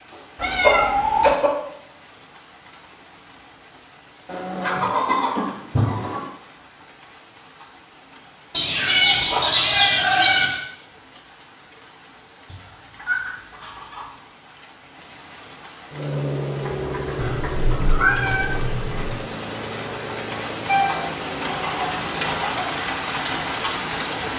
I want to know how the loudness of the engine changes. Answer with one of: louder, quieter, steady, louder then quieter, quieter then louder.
quieter.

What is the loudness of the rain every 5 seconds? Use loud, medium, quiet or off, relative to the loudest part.
quiet, quiet, quiet, medium, loud.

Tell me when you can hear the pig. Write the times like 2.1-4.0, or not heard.
not heard.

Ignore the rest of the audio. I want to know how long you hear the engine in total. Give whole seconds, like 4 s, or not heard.
7 s.